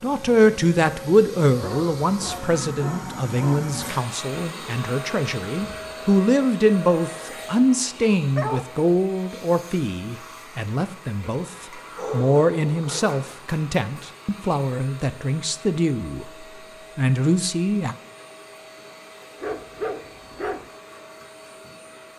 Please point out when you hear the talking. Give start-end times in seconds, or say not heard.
0.0-17.9.